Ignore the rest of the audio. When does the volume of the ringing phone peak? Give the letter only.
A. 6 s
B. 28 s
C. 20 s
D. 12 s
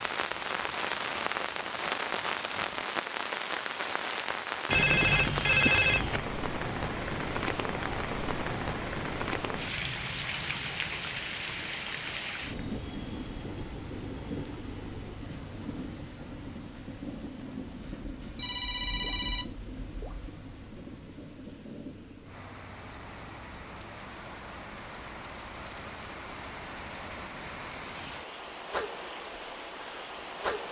A.